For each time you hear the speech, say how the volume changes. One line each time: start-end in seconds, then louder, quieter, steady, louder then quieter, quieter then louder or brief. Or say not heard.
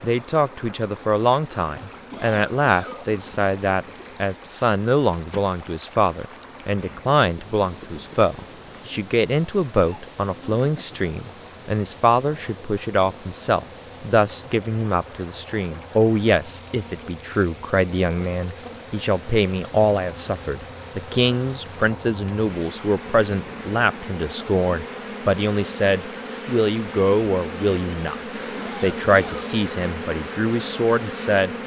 0.0-31.5 steady.